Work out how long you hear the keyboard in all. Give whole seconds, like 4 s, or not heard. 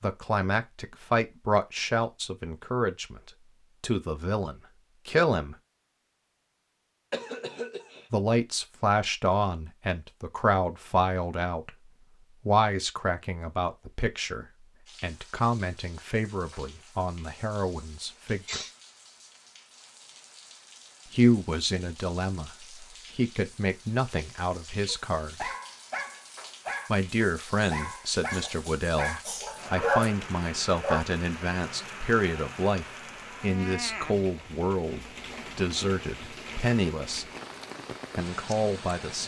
not heard.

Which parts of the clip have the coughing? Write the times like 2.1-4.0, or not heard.
7.1-8.1, 18.0-18.7, 28.3-29.6.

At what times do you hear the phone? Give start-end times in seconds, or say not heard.
not heard.